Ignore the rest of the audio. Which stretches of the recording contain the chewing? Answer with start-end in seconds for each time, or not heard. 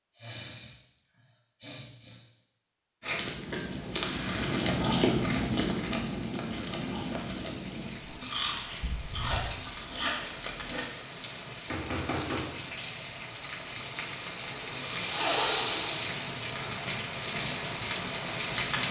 3.0-10.9.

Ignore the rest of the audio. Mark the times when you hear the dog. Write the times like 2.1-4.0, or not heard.
not heard.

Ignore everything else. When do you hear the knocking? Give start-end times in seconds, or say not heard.
11.7-12.6.